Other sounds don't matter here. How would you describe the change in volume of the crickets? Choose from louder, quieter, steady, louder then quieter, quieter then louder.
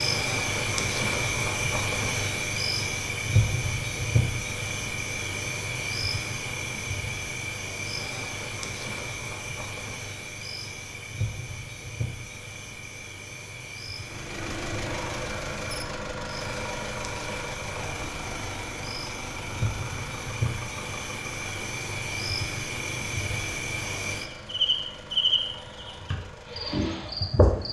quieter then louder.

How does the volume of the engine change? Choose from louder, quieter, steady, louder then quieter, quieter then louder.
quieter.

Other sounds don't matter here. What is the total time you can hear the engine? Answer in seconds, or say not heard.
14 s.